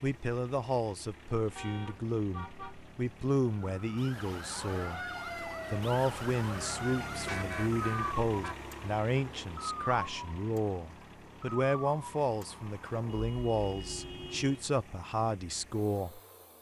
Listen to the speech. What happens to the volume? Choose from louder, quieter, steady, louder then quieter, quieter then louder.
steady.